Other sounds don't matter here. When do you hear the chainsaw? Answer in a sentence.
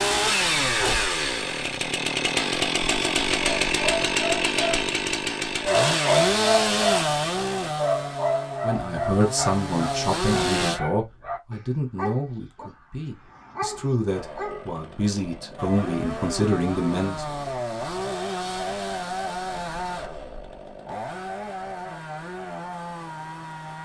The chainsaw can be heard from 0.0 to 10.8 s and from 14.1 to 23.8 s.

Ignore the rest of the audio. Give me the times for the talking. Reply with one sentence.
The talking can be heard from 8.6 to 17.2 s.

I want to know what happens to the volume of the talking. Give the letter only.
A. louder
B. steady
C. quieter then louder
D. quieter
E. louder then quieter
C.